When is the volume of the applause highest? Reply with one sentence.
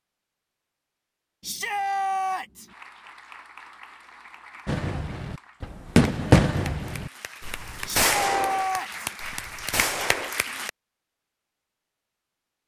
The volume of the applause peaks at 10 seconds.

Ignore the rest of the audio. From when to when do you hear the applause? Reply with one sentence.
You can hear the applause from 2.6 to 10.7 s.